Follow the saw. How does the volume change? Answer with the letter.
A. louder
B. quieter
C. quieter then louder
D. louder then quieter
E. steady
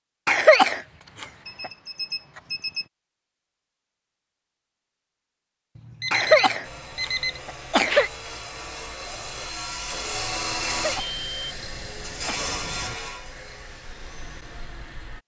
D.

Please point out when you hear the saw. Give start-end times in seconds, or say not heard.
6.6-15.2.